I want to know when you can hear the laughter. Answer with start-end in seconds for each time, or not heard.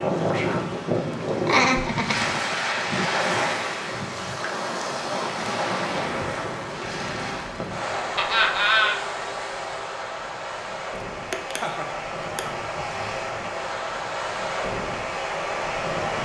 1.4-2.2, 8.2-9.0, 11.3-12.6.